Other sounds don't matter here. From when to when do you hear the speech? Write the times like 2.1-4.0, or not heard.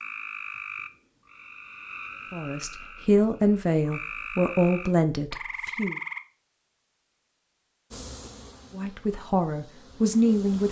2.3-6.0, 8.7-10.6.